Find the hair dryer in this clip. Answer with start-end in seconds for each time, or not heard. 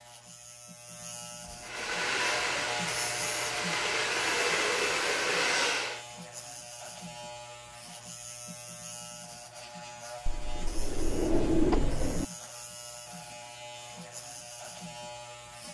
1.6-6.0.